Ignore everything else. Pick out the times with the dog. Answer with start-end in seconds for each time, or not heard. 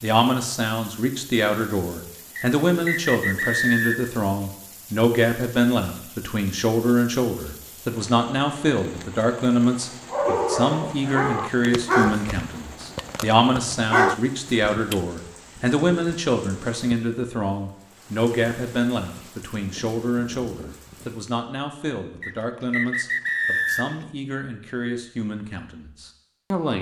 10.1-15.0.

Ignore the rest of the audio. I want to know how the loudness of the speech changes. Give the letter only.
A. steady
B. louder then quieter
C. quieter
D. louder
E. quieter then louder
C.